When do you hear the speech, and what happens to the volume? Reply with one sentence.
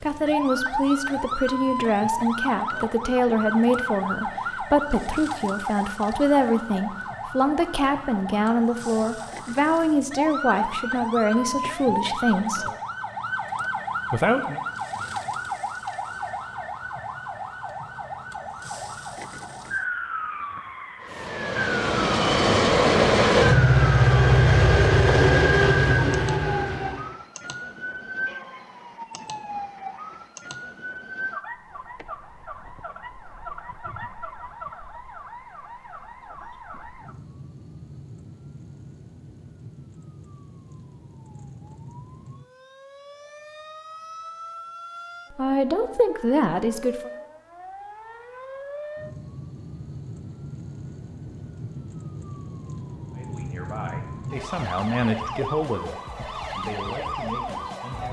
The speech can be heard from 0.0 to 12.7 s, at a steady volume; briefly from 14.1 to 14.6 s; briefly from 45.3 to 47.1 s; and from 53.1 to 58.0 s, getting louder then quieter.